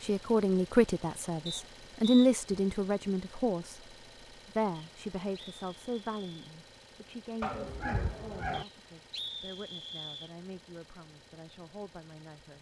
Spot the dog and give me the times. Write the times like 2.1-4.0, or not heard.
7.4-8.7.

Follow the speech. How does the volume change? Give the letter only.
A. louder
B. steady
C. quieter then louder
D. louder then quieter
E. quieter
E.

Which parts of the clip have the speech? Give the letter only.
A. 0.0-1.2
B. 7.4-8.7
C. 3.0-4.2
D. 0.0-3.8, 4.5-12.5
D.